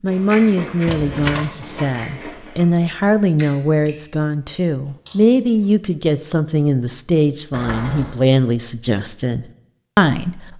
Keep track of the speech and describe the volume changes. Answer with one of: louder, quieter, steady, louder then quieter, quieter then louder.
steady.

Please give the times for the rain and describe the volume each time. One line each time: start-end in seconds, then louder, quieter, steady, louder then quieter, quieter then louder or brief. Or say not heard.
not heard.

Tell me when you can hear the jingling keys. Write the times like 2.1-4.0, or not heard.
0.8-1.4, 7.5-8.2.